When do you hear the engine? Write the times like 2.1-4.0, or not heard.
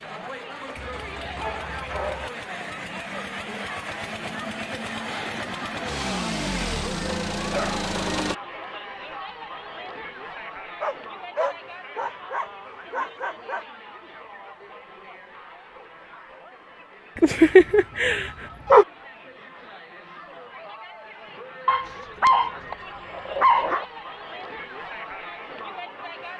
0.0-8.3.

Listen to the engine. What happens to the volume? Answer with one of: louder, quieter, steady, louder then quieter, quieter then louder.
louder.